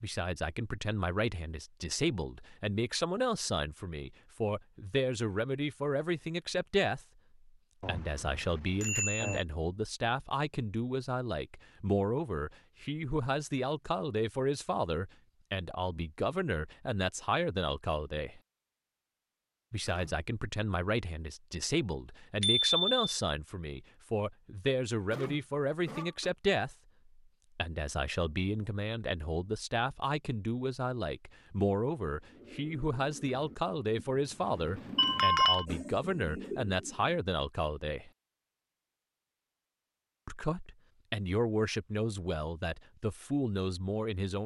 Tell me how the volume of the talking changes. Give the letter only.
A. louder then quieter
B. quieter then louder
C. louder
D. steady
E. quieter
D.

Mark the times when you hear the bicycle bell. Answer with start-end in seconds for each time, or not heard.
7.8-9.4, 22.4-23.0, 35.0-35.6.